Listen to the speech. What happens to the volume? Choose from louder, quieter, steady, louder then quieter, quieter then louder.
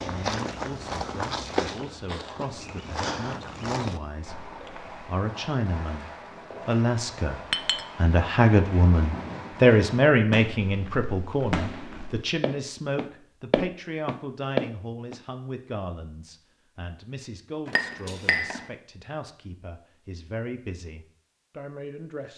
louder then quieter.